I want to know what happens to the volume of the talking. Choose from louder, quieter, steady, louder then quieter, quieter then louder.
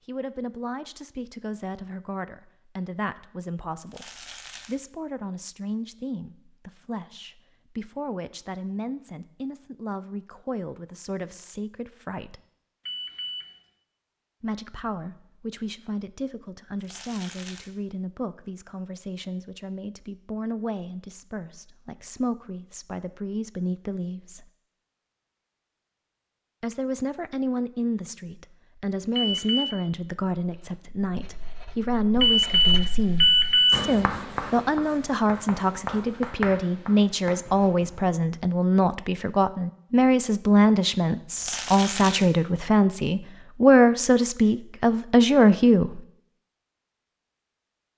louder.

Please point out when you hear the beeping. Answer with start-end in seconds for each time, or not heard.
12.8-13.4, 29.1-29.8, 32.2-33.8.